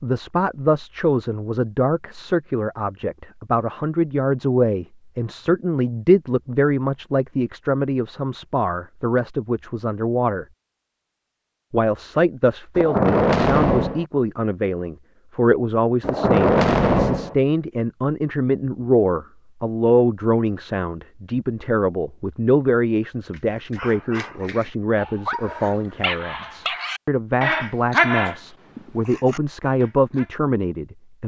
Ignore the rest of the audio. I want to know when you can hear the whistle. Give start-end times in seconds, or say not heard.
not heard.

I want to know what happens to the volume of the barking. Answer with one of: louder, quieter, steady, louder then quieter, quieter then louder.
louder then quieter.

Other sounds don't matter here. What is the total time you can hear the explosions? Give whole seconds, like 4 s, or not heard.
3 s.